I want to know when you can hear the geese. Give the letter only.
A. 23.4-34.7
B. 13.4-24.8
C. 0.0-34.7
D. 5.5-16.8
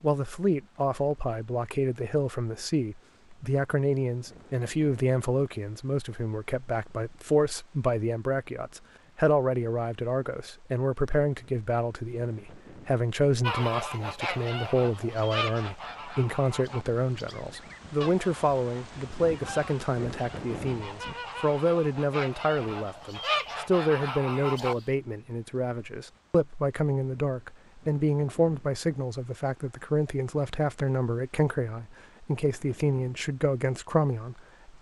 B.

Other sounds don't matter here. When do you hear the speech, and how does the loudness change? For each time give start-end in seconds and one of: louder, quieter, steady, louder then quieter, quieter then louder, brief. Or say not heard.
0.0-34.7 steady.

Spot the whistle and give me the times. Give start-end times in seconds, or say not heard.
not heard.